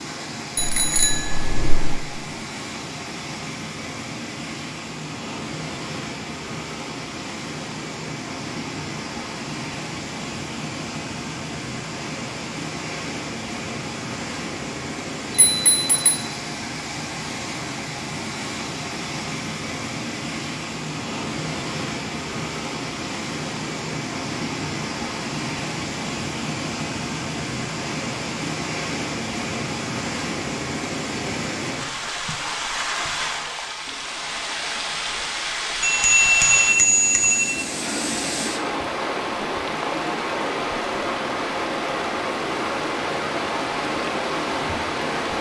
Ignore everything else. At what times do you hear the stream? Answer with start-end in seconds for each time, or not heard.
0.0-45.3.